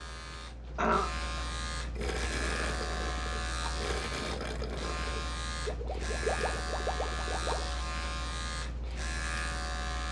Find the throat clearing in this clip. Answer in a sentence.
The throat clearing can be heard from 0.8 to 1.4 s.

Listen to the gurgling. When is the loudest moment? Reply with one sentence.
The volume of the gurgling peaks at 6 seconds.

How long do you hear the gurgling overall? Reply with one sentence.
You can hear the gurgling for 6 seconds altogether.